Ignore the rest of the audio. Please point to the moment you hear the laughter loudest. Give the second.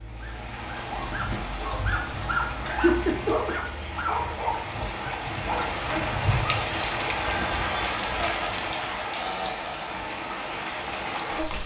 3 s.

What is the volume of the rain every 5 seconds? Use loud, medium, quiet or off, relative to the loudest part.
medium, loud, loud.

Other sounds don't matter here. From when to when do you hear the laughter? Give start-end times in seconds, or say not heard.
2.6-3.5, 8.2-10.0.